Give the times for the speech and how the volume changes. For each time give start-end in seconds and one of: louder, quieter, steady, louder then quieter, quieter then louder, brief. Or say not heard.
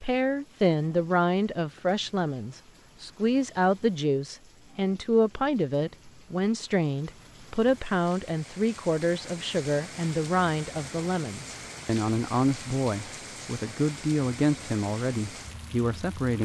0.0-16.3 steady.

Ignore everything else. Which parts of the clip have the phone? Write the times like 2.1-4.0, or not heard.
not heard.